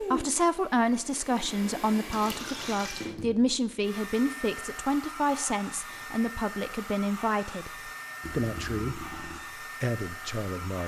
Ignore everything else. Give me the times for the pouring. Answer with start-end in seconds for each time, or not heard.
2.1-3.1, 8.2-9.4.